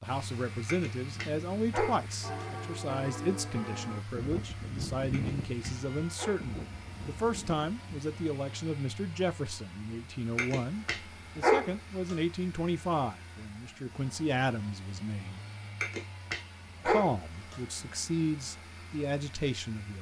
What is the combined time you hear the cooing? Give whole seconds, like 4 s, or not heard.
not heard.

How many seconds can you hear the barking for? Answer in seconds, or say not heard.
7 s.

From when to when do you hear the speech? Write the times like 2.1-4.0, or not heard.
0.0-15.4, 16.9-19.9.